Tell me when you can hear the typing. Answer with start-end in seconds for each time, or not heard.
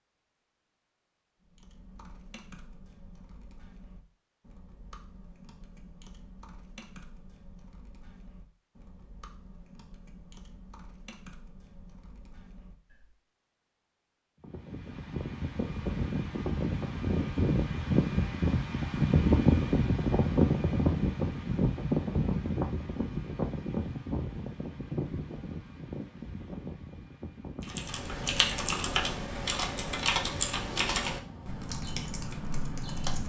1.4-13.2, 27.6-33.2.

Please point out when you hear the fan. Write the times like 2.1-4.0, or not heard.
14.4-33.2.